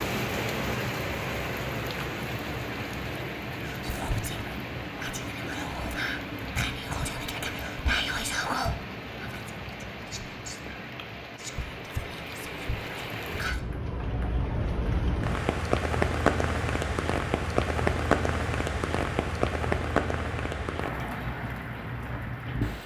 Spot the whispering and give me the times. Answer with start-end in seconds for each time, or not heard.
3.6-13.6.